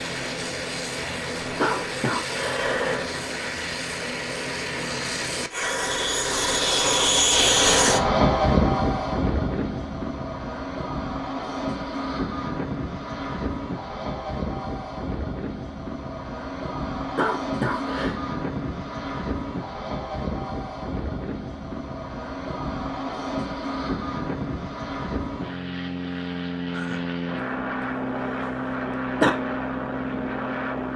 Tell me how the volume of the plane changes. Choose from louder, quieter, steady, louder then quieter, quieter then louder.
louder then quieter.